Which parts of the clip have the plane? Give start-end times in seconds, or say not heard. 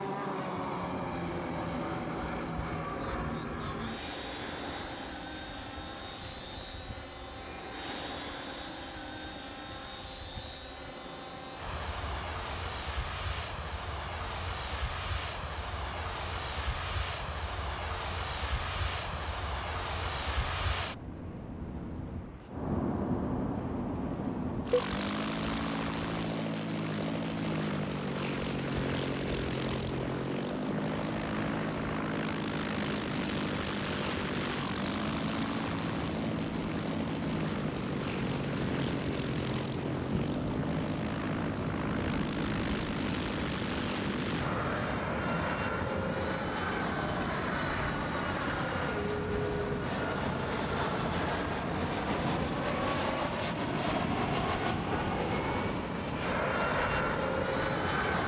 0.0-58.2.